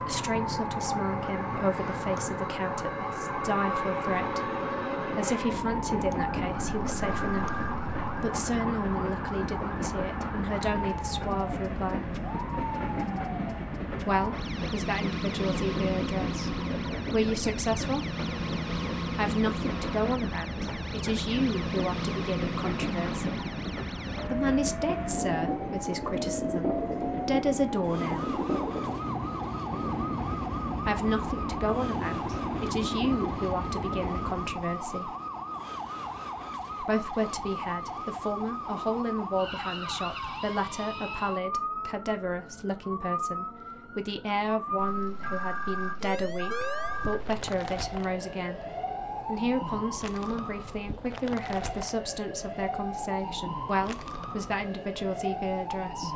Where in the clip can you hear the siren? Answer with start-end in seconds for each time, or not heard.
0.0-56.1.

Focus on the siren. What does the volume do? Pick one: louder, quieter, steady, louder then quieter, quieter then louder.
steady.